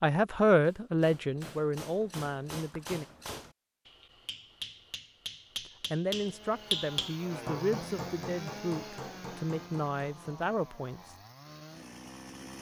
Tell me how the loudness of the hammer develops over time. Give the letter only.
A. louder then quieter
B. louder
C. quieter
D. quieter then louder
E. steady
A.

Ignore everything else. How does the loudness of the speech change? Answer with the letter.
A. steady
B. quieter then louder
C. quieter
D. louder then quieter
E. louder
C.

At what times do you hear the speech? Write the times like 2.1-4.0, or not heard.
0.0-3.0, 5.9-11.2.